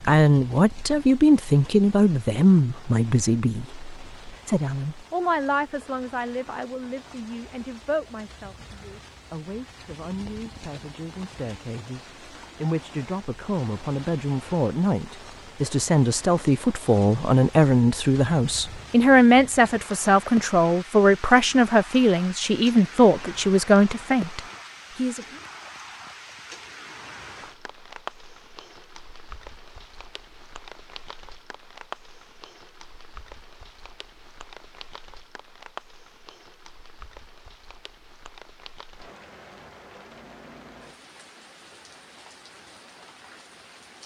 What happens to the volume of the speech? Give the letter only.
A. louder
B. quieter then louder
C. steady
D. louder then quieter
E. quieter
B.